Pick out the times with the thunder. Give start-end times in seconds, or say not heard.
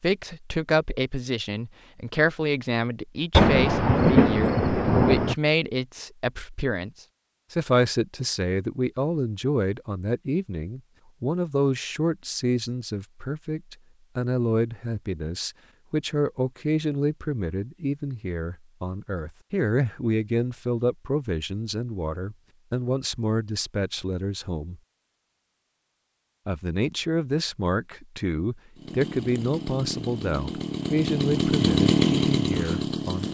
3.3-5.3.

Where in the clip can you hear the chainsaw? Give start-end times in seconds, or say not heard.
28.8-33.3.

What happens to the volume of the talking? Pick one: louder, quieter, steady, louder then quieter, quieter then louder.
steady.